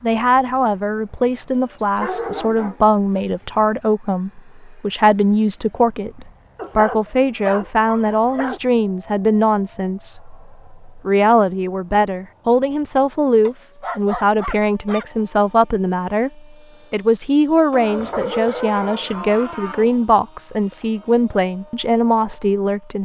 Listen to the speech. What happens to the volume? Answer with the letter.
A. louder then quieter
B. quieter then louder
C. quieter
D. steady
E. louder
D.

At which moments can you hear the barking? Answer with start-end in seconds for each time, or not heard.
1.6-3.6, 6.5-8.6, 13.4-15.1, 17.7-20.0.